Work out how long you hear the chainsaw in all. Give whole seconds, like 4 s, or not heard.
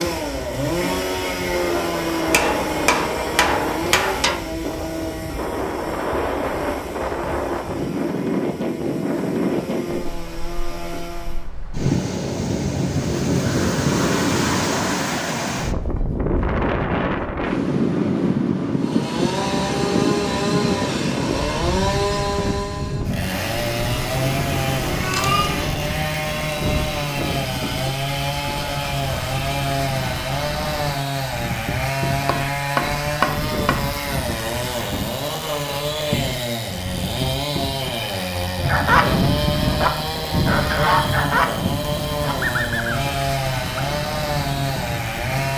38 s.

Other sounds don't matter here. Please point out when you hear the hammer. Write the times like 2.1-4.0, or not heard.
2.3-4.4, 32.2-34.0.